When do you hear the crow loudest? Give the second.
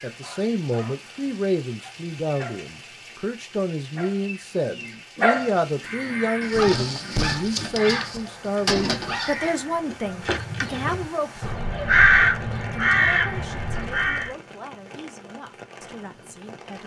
12 s.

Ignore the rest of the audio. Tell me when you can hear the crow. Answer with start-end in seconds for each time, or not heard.
5.7-14.3.